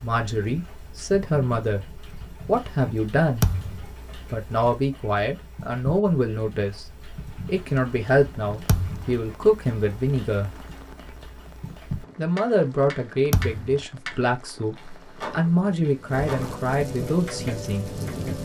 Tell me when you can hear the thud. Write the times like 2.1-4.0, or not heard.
3.4-4.0, 8.7-9.1, 13.3-13.8.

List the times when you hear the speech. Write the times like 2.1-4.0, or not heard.
0.0-3.5, 4.3-10.6, 12.2-17.9.